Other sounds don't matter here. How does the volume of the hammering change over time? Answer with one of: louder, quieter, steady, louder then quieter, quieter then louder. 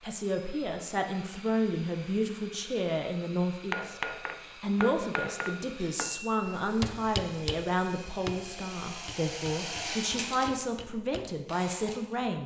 quieter.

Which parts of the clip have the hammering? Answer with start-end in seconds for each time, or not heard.
3.7-11.4.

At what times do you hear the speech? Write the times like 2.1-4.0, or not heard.
0.0-4.0, 4.6-12.4.